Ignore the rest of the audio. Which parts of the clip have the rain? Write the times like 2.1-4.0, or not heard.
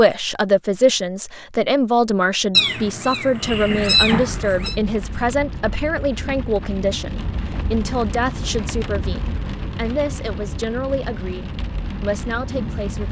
3.4-13.0.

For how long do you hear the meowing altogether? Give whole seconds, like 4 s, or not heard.
2 s.